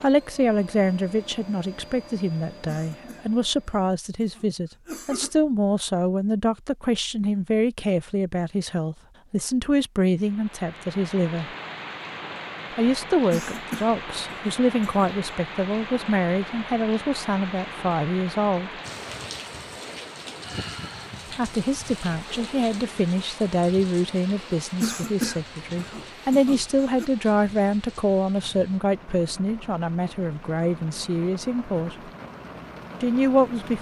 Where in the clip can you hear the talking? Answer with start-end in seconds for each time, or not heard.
0.0-11.5, 12.8-18.7, 21.4-32.1, 33.0-33.7.